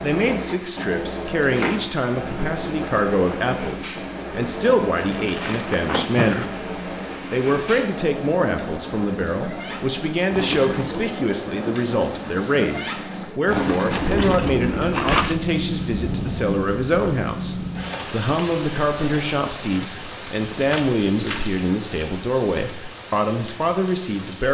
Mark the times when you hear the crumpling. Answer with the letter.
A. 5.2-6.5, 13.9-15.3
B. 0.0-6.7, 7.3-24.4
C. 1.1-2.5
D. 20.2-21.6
A.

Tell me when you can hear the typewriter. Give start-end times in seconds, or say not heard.
20.2-21.6.